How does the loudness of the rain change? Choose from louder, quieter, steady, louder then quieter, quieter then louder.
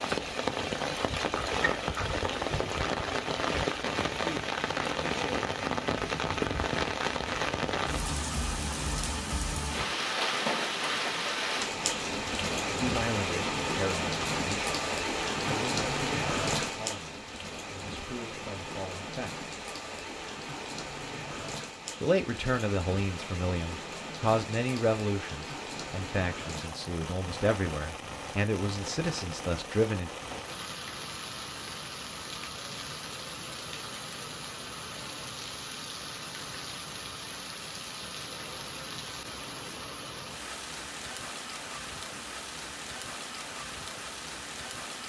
quieter.